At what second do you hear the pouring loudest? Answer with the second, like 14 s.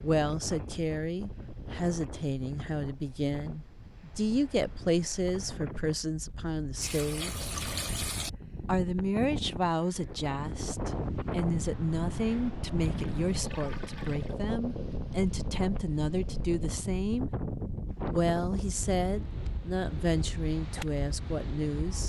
8 s.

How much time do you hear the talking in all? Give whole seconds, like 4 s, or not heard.
20 s.